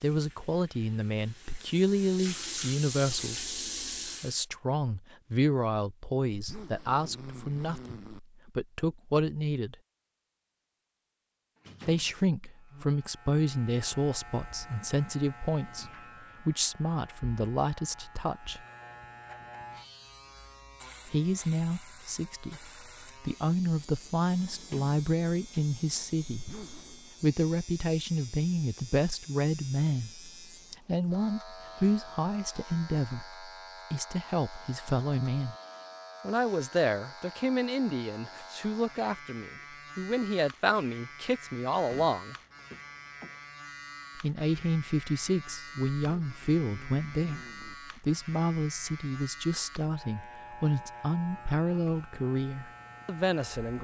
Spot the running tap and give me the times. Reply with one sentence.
You can hear the running tap from 0.0 to 4.5 s.